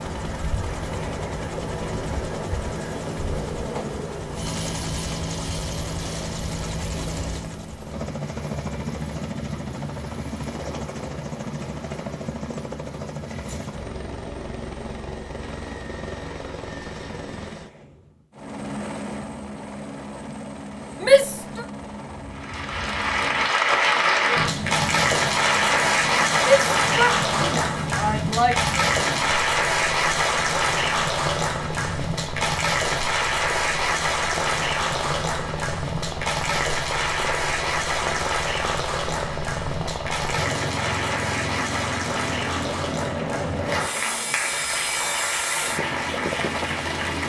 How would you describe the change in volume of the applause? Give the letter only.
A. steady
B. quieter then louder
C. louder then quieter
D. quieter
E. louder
D.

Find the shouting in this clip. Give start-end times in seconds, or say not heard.
21.0-21.6, 26.4-28.8.